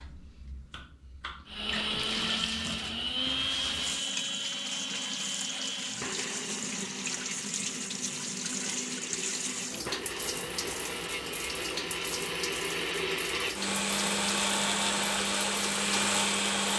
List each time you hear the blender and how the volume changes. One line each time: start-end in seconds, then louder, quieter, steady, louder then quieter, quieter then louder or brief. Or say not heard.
1.4-16.7 quieter then louder.